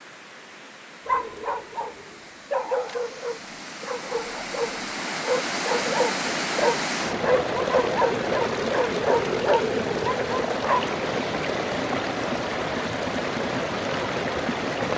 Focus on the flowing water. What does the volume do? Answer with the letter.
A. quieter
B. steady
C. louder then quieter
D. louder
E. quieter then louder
D.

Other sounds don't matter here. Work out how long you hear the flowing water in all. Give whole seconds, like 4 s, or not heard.
15 s.